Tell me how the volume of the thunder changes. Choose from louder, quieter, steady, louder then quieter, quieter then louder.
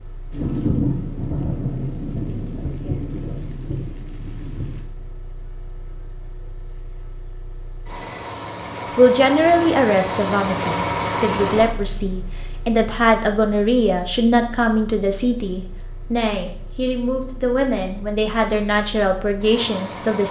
quieter.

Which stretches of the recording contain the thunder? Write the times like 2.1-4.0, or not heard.
0.3-4.8.